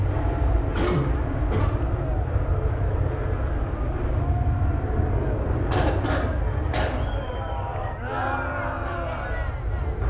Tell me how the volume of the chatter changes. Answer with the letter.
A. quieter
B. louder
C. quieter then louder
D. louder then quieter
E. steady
B.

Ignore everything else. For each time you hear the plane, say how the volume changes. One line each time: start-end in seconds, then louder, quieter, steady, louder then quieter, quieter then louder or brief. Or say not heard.
0.0-10.0 quieter.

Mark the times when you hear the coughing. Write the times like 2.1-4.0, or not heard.
0.8-1.7, 5.7-7.0.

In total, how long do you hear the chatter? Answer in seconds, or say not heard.
10 s.